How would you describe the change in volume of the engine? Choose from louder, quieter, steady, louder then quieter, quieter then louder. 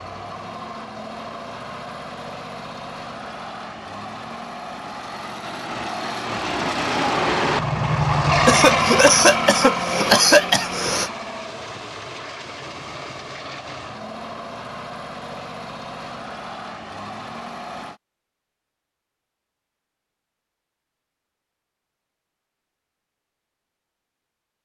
louder then quieter.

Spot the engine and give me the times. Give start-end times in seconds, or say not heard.
0.0-18.0.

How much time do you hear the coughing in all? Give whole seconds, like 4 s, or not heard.
3 s.